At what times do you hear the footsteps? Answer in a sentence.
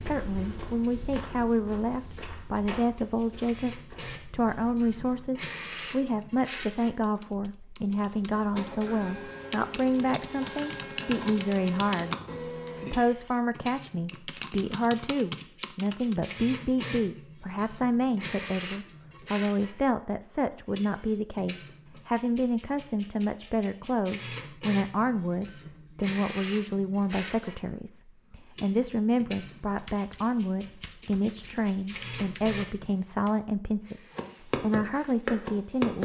You can hear the footsteps from 0.0 to 5.3 s and from 34.1 to 36.0 s.